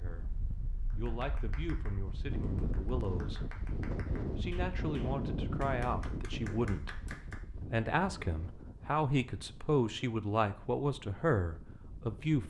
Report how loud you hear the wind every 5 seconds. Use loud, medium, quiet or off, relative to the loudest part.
loud, loud, quiet.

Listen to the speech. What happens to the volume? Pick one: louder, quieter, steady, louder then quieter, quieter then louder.
louder.